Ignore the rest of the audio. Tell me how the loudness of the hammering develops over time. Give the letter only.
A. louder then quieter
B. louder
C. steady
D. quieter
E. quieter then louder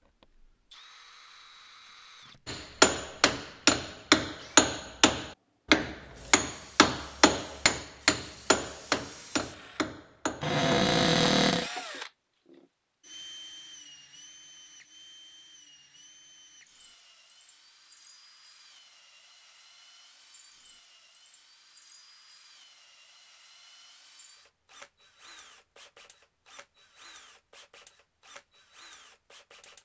D.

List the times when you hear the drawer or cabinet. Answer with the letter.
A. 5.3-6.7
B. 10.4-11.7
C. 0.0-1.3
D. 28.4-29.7
B.